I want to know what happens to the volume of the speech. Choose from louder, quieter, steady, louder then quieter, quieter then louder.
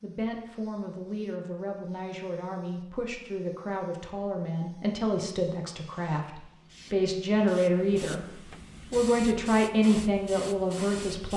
louder.